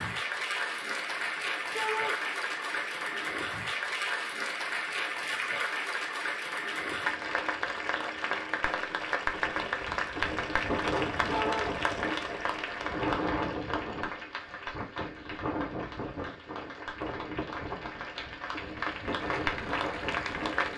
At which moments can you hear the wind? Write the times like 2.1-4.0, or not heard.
9.3-20.7.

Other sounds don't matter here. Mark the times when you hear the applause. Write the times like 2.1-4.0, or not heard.
0.0-20.7.